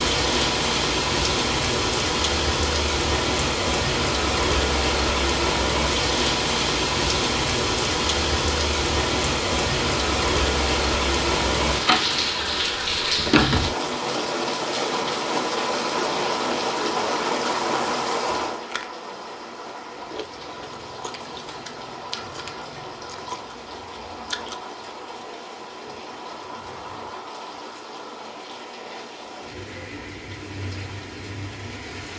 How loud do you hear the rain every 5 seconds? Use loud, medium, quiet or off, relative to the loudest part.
loud, loud, loud, loud, quiet, quiet, quiet.